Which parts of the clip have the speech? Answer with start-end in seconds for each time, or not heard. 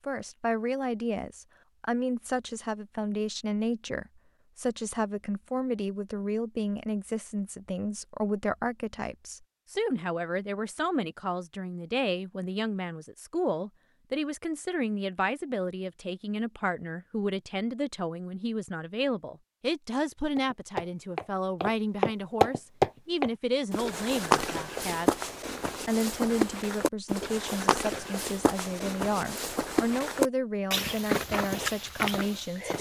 0.1-25.1, 25.9-32.7.